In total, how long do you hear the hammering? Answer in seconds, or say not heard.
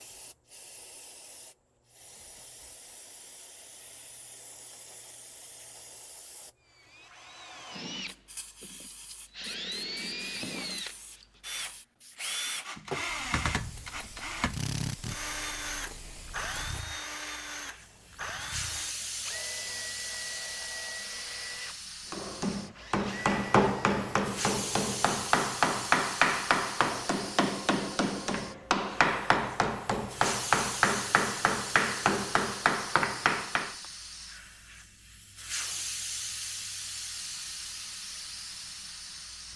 12 s.